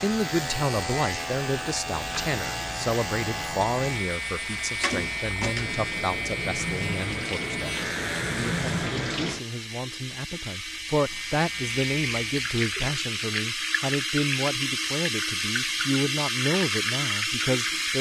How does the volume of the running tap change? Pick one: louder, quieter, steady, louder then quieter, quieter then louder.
louder.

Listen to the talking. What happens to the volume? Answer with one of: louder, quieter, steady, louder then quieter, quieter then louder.
quieter then louder.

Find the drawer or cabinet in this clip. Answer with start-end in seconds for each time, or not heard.
4.8-5.7.